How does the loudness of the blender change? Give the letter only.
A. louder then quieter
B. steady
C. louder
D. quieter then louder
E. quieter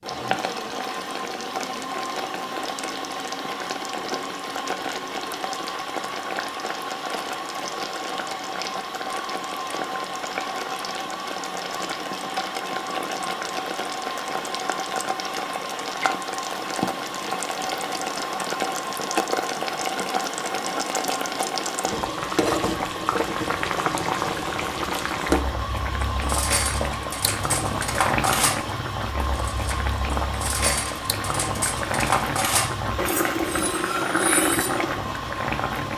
B.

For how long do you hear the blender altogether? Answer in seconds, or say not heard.
36 s.